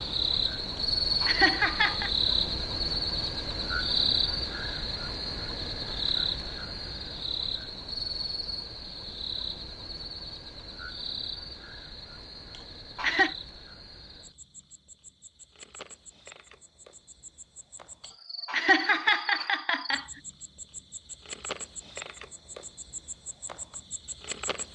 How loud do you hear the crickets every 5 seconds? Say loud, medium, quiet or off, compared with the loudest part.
loud, medium, quiet, quiet, quiet.